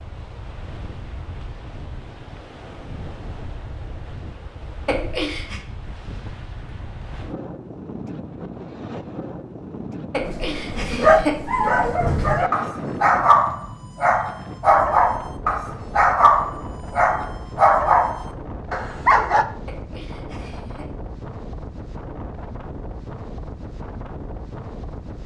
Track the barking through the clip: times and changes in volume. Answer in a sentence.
You can hear the barking from 10.2 to 19.4 s, at a steady volume.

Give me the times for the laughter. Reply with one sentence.
You can hear the laughter from 4.8 to 5.6 s, from 10.1 to 11.7 s and from 19.6 to 20.9 s.